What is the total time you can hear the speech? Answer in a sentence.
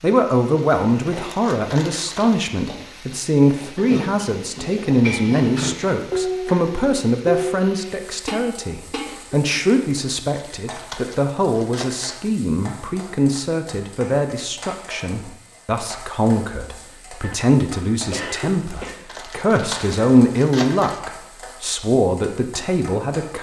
You can hear the speech for 23 seconds altogether.